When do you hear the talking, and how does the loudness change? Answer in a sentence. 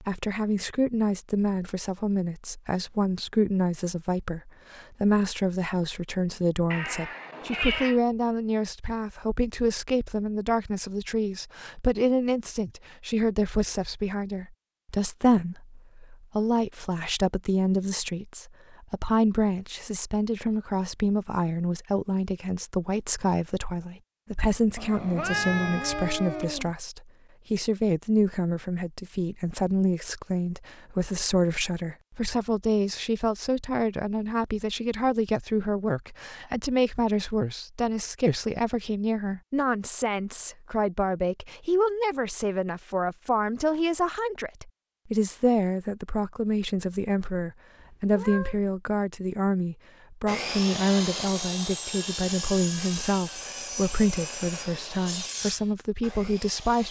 The talking can be heard from 0.0 to 56.8 s, at a steady volume.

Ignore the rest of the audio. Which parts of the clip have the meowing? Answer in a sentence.
The meowing can be heard from 6.7 to 8.0 s, from 24.8 to 26.8 s and from 47.8 to 48.6 s.